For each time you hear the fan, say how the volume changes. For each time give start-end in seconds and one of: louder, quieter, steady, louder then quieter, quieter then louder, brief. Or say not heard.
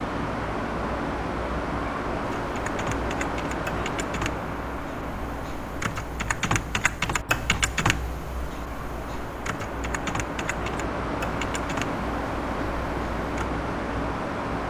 0.0-14.6 quieter then louder.